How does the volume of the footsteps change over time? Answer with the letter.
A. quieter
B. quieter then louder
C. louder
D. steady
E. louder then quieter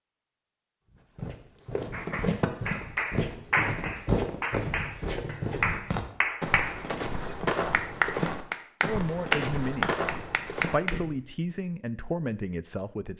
D.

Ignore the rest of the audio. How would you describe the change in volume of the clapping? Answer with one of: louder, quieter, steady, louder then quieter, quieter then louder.
louder.